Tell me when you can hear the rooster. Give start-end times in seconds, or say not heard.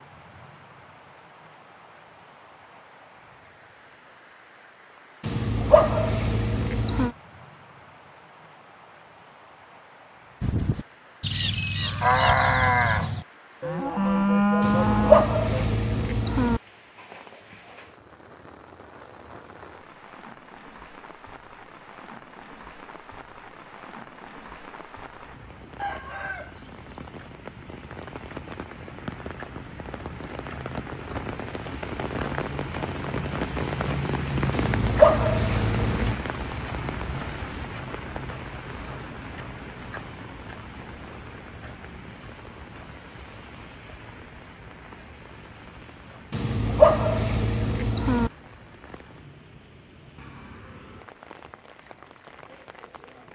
25.8-27.0.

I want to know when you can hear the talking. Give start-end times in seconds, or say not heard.
not heard.